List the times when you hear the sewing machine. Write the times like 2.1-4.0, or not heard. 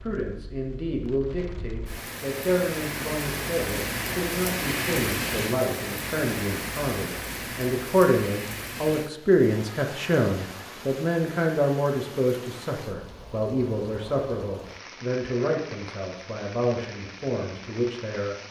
not heard.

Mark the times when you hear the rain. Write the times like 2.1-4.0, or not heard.
0.0-18.4.